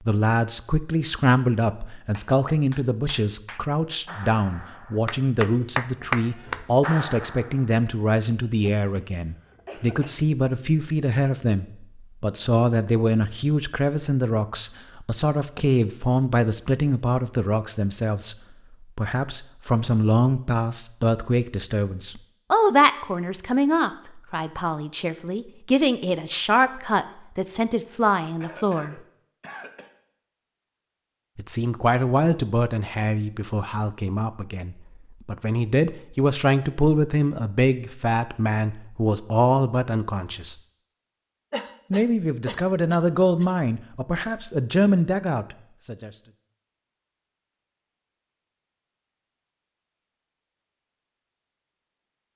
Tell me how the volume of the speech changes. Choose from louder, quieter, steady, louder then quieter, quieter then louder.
steady.